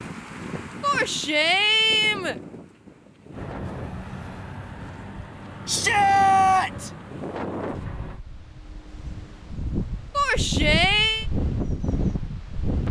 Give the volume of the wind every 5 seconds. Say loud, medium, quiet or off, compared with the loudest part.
medium, medium, loud.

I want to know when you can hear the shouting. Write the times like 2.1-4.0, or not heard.
0.8-2.4, 5.7-6.9, 10.2-11.2.